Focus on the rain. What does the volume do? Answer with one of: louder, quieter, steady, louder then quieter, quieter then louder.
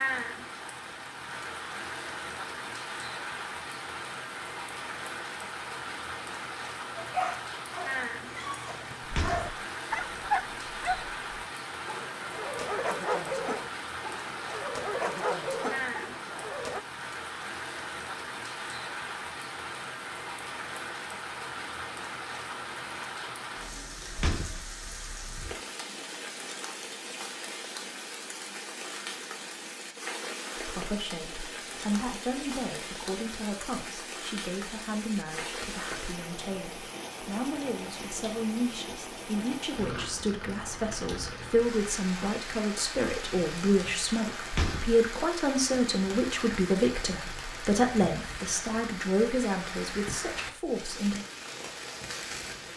steady.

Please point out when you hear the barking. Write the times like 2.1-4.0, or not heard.
7.0-16.8.